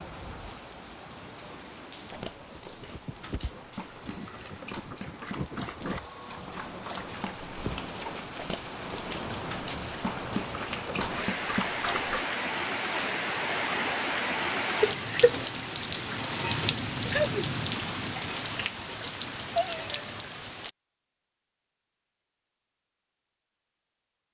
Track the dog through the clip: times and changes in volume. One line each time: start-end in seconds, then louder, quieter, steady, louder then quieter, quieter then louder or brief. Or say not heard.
2.0-12.2 louder.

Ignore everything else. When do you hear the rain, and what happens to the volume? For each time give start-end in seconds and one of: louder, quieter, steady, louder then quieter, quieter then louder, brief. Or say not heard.
0.0-20.7 louder.